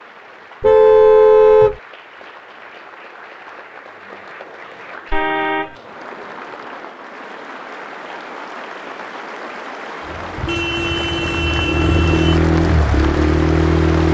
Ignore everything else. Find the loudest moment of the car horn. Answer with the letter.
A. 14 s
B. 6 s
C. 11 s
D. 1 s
D.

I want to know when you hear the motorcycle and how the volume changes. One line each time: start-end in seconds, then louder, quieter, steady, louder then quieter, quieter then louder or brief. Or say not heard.
10.0-14.0 louder.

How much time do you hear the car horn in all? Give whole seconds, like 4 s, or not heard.
4 s.